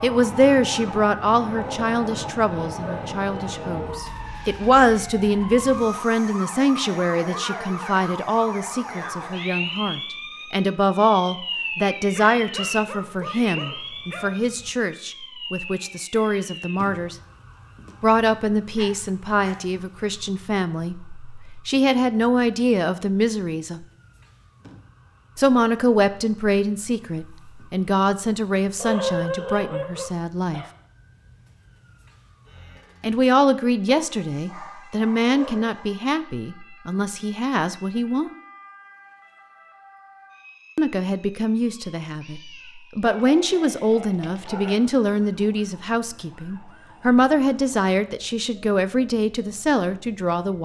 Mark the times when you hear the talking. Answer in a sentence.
The talking can be heard from 0.0 to 17.1 s, from 18.0 to 23.9 s, from 25.4 to 30.6 s, from 33.0 to 38.4 s and from 40.8 to 50.6 s.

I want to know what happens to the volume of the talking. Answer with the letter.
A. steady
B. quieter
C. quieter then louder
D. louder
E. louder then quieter
A.